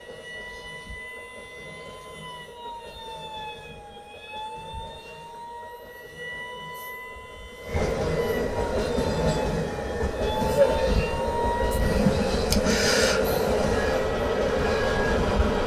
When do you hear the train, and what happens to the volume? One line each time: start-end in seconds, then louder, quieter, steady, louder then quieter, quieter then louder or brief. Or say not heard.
0.0-15.6 louder.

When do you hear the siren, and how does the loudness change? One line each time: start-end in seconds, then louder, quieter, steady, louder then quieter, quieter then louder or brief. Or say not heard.
0.0-15.6 louder.